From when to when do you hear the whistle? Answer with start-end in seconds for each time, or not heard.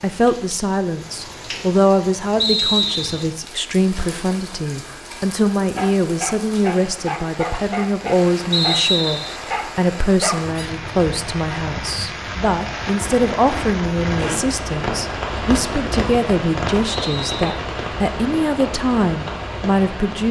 2.4-3.2, 8.5-9.4, 16.9-17.6.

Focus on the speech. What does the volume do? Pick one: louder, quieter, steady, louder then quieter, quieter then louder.
steady.